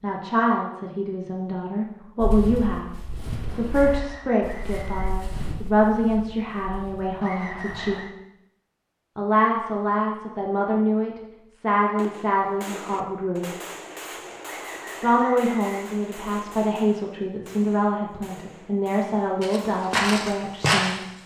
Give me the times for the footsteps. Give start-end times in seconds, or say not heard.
2.2-8.0, 19.4-21.0.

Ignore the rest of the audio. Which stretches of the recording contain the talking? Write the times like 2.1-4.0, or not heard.
0.0-2.9, 3.5-8.0, 9.2-13.4, 15.0-21.1.